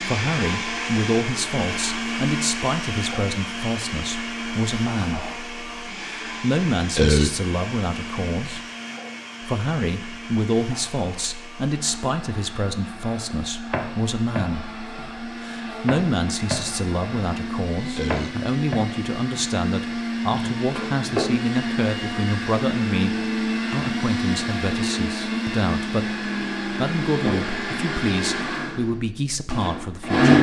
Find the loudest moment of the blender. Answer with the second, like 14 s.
30 s.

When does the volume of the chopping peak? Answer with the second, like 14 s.
21 s.